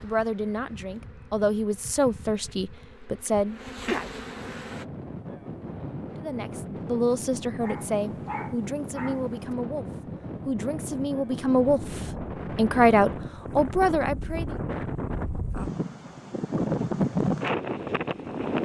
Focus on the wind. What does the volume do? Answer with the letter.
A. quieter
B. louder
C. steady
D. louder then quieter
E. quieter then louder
B.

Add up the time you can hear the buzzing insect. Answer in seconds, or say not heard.
5 s.